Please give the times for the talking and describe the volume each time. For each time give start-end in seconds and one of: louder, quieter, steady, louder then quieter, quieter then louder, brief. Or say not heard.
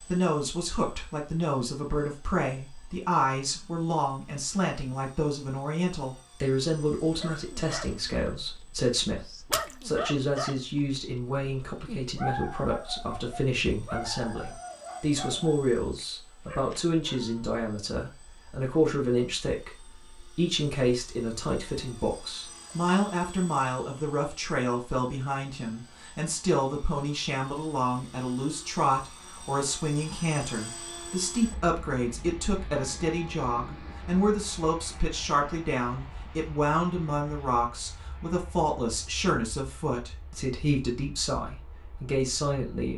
0.0-42.9 steady.